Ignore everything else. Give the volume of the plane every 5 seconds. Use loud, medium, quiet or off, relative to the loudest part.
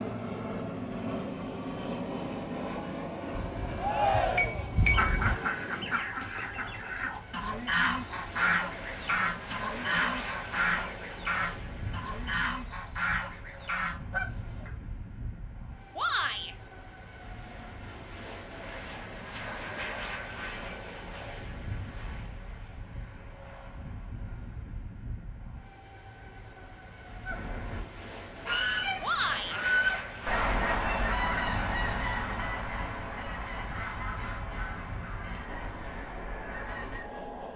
loud, medium, medium, medium, medium, medium, medium, medium.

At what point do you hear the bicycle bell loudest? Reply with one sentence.
The volume of the bicycle bell peaks at 5 seconds.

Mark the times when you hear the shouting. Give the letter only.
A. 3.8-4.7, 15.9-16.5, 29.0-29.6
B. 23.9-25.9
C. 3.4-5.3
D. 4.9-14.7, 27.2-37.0
A.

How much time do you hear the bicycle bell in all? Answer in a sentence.
The bicycle bell can be heard for 2 seconds in total.